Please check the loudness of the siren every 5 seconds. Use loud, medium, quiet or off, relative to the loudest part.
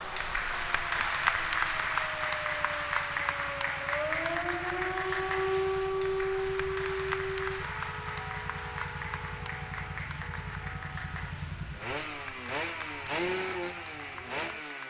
medium, loud, quiet.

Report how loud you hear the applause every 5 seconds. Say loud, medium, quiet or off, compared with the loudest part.
loud, medium, quiet.